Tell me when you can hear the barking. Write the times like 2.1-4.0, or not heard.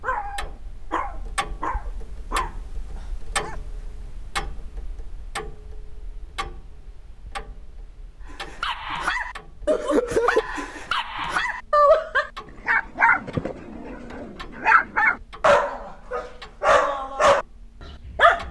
0.0-3.6, 8.3-18.4.